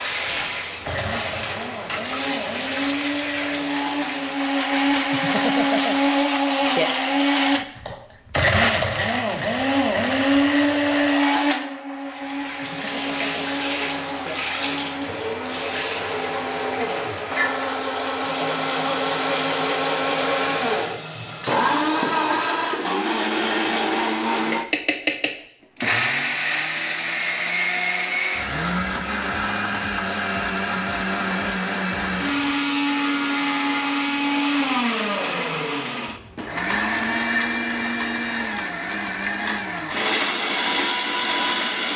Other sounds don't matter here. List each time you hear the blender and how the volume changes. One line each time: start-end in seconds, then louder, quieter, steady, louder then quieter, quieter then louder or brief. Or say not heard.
0.2-41.9 steady.